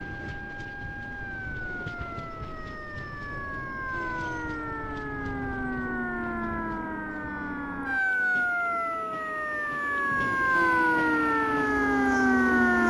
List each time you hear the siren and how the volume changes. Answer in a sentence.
You can hear the siren from 0.0 to 12.8 s, getting louder.